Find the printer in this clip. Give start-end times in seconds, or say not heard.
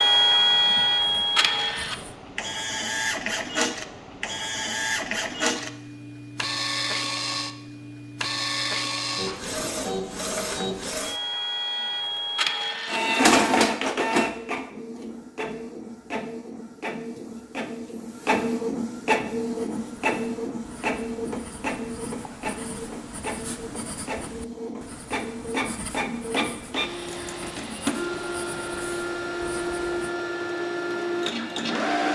0.0-32.0.